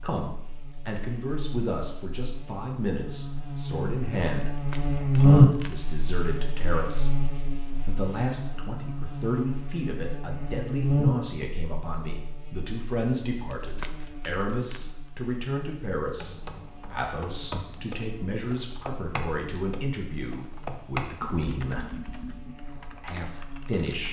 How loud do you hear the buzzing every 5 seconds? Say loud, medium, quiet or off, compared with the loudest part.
quiet, loud, medium, quiet, quiet.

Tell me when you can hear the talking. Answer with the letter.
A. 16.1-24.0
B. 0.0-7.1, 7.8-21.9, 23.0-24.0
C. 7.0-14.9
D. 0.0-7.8
B.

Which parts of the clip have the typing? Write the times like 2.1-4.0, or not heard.
16.1-24.0.